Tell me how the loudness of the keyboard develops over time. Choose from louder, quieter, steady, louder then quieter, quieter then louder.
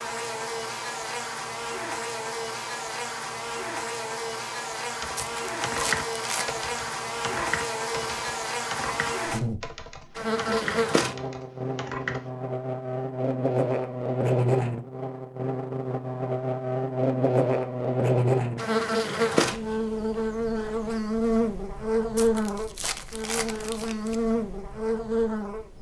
quieter.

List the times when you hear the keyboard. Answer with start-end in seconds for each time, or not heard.
5.0-12.3.